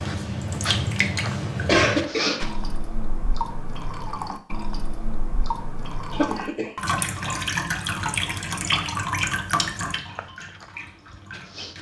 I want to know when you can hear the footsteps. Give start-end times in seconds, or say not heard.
0.0-2.8, 10.1-11.7.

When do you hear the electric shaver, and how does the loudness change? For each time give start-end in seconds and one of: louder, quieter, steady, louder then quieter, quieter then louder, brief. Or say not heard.
not heard.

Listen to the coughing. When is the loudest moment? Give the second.
2 s.